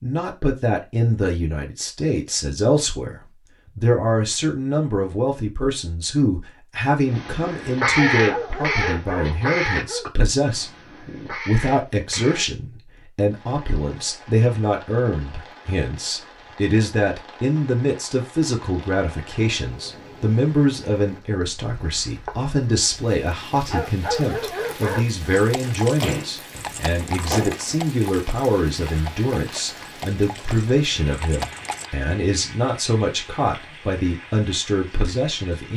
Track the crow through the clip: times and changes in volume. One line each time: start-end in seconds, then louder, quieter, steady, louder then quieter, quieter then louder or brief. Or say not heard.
7.0-12.5 quieter then louder.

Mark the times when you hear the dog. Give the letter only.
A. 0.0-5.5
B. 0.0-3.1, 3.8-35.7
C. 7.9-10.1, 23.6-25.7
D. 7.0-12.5
C.